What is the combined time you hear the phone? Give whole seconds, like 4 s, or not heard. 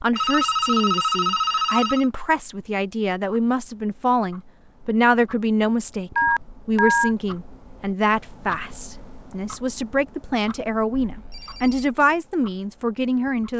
4 s.